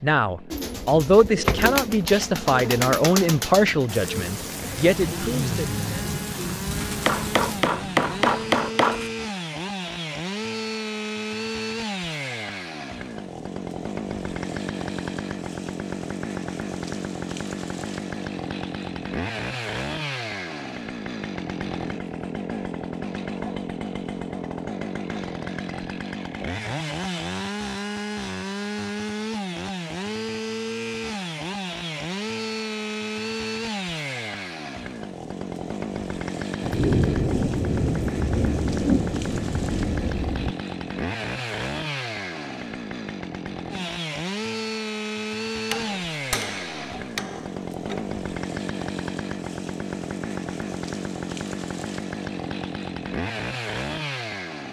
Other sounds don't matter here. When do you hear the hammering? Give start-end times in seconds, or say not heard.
7.0-9.0, 45.7-48.1.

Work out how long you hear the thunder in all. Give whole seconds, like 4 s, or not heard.
8 s.